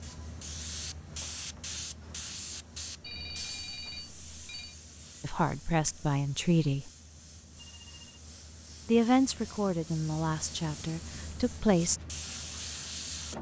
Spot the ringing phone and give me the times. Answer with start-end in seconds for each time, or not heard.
3.0-4.8, 7.5-8.2.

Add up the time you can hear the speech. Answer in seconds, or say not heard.
5 s.